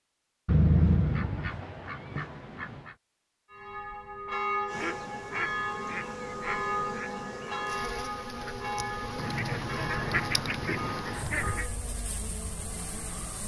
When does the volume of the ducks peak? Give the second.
1 s.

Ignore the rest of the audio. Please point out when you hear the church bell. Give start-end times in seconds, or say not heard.
3.5-11.8.